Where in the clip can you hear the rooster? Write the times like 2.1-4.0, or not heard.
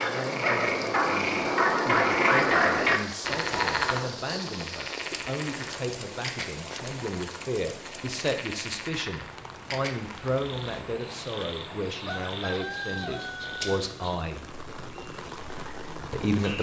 12.1-13.6.